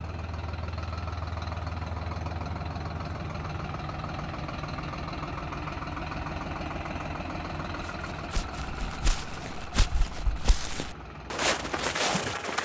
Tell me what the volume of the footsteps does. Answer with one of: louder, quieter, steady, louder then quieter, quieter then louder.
louder.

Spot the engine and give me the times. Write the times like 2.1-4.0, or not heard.
0.0-12.6.